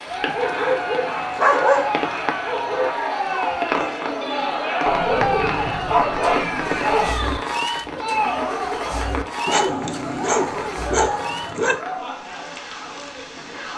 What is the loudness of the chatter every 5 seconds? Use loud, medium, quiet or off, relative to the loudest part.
loud, loud, medium.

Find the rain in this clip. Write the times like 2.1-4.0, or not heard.
0.0-13.7.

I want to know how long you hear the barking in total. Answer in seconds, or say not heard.
7 s.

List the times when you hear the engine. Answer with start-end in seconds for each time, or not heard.
5.1-11.6.